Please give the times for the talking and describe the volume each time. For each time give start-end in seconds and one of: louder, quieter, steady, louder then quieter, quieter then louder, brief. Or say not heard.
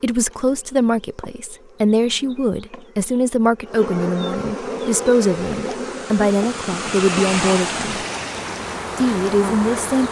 0.0-8.1 steady
9.0-10.0 brief.